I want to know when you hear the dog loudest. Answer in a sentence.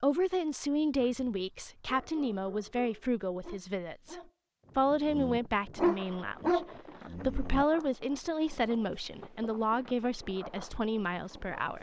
The volume of the dog peaks at 6 seconds.